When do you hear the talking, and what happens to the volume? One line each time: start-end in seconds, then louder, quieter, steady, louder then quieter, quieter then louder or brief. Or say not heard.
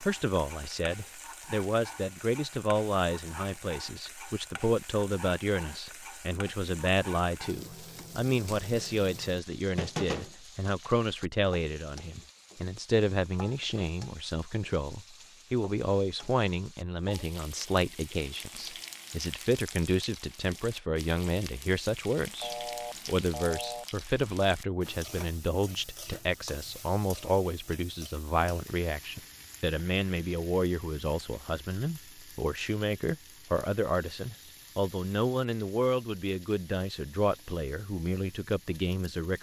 0.0-39.3 steady.